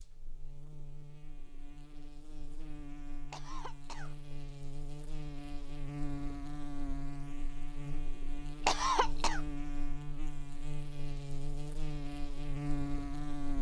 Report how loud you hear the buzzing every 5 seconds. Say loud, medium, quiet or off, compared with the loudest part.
medium, loud, loud.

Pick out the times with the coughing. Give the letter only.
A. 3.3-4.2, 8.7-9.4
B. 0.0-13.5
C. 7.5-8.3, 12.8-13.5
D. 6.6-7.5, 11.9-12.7
A.